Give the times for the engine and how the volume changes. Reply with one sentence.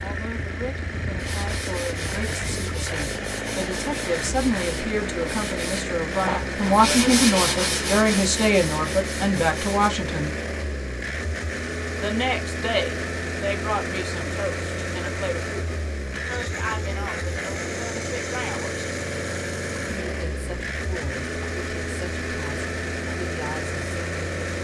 You can hear the engine from 0.0 to 24.5 s, at a steady volume.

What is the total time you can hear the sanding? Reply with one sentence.
The sanding can be heard for 9 seconds in total.